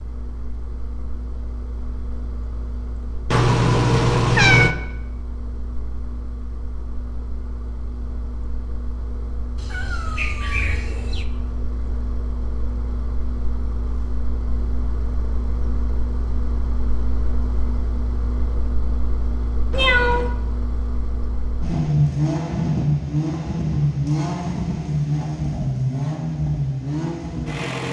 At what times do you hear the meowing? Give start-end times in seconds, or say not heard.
3.3-4.8, 9.6-11.2, 19.7-20.3.